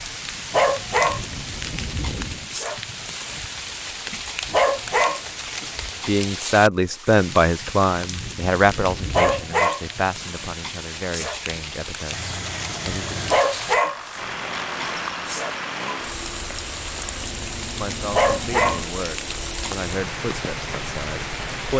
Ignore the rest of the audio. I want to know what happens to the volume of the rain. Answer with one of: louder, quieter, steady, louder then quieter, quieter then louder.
steady.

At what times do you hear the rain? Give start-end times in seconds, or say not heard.
0.0-21.7.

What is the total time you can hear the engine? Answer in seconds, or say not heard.
7 s.